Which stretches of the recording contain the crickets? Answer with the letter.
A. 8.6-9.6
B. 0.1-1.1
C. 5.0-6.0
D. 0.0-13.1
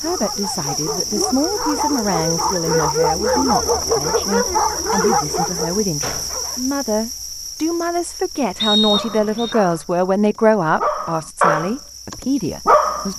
D.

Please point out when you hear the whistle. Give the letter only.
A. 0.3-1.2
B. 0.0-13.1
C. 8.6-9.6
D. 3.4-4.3
C.